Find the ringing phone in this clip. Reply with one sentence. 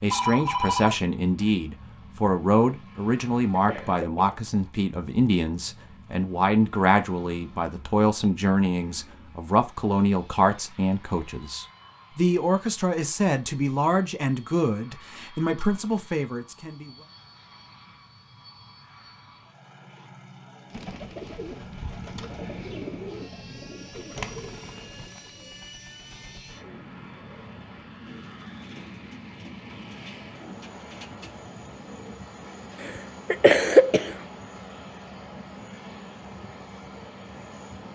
The ringing phone can be heard from 0.1 to 1.8 s.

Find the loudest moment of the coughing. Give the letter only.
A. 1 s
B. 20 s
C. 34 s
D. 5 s
C.